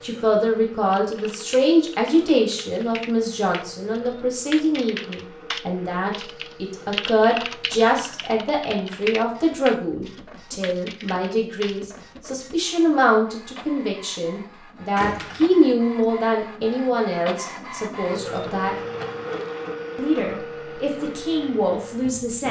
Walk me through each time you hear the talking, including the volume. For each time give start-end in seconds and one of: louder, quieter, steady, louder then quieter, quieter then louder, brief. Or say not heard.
0.0-18.8 steady
19.9-22.4 brief.